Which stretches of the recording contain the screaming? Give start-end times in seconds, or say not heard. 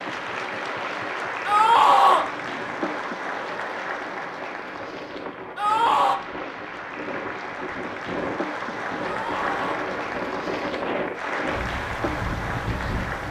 1.4-2.2, 5.5-6.2, 9.1-9.6.